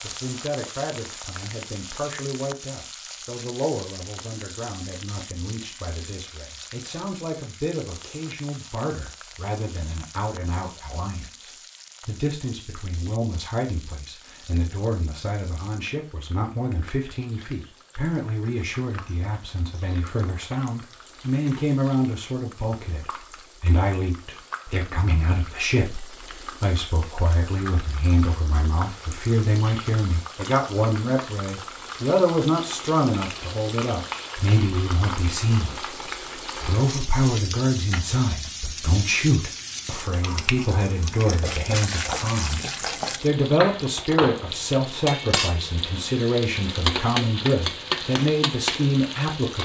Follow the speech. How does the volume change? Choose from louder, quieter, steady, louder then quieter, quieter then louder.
louder.